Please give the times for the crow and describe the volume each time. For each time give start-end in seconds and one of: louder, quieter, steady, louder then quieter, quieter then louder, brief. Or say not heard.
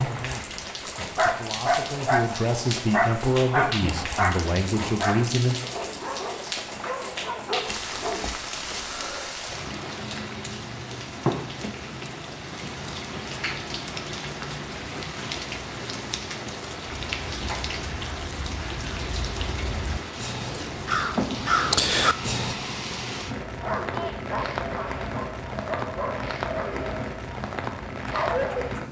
17.0-22.6 louder.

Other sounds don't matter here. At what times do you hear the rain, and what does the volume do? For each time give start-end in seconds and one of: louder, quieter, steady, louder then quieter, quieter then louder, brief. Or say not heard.
0.0-28.8 steady.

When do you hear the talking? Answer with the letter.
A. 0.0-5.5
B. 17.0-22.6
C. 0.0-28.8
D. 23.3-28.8
A.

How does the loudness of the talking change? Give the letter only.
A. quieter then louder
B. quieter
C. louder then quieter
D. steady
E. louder
E.